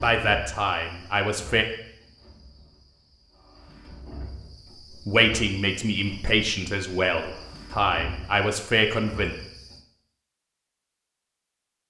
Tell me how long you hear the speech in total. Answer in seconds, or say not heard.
6 s.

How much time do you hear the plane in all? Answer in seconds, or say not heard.
not heard.